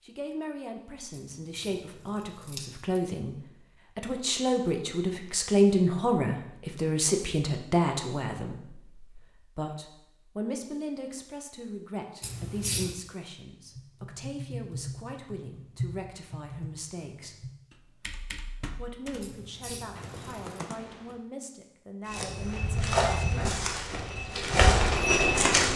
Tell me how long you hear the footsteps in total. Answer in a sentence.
The footsteps can be heard for 4 seconds in total.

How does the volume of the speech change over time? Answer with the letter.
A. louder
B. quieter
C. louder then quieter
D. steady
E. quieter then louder
C.